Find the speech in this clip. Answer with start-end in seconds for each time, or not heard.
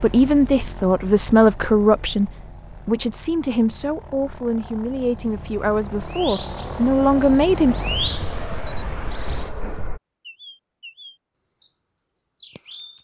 0.0-7.8.